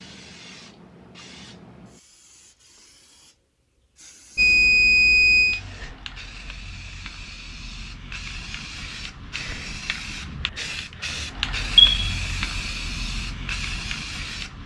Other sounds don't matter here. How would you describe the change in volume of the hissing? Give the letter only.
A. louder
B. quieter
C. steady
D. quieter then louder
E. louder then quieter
A.